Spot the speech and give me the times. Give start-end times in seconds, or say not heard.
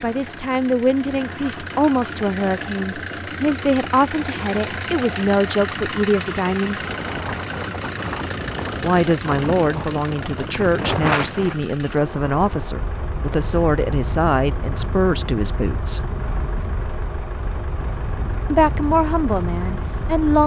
0.0-6.8, 8.8-16.0, 18.5-20.4.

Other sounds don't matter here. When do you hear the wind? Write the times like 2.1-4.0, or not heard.
6.8-20.4.